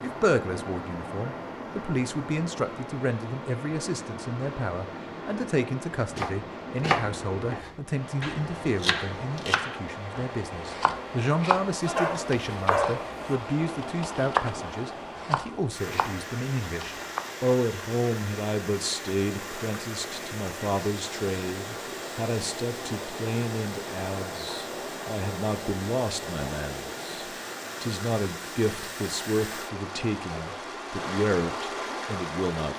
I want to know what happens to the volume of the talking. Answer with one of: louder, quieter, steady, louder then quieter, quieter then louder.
steady.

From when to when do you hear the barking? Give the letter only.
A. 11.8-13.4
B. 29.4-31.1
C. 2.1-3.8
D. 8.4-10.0
A.